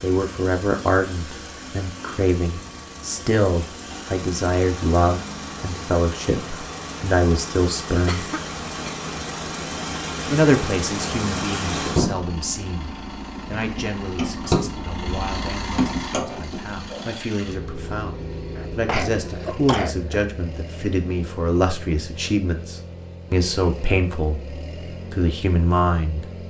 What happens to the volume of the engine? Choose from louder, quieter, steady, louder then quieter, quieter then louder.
louder then quieter.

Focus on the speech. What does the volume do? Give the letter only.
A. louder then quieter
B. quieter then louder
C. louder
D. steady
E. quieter
B.